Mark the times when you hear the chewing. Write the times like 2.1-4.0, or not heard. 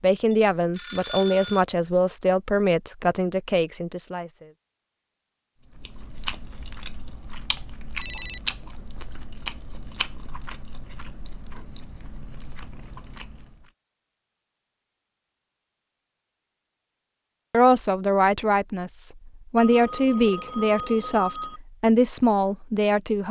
5.7-13.7.